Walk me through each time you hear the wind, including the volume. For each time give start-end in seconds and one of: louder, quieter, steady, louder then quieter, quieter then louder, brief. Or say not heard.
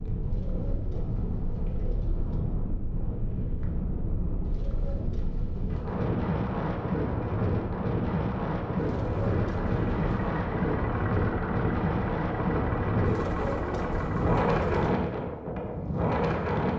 0.0-16.7 louder.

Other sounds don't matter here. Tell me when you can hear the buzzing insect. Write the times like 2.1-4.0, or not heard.
not heard.